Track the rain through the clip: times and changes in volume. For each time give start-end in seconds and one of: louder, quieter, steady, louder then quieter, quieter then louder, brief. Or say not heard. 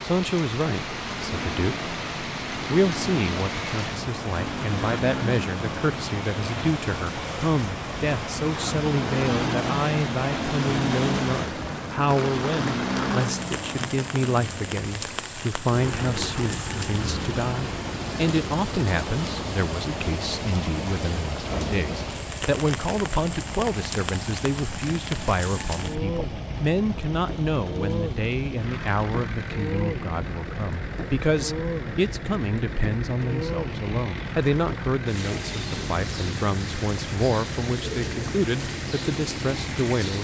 0.0-40.1 steady.